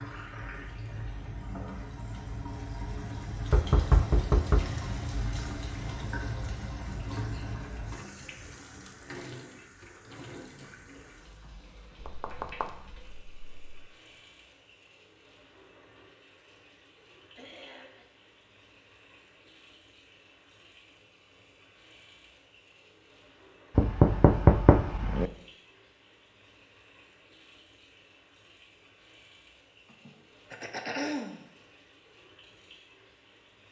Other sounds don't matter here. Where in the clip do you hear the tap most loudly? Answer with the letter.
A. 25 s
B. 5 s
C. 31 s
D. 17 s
B.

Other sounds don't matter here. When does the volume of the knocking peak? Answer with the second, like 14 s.
25 s.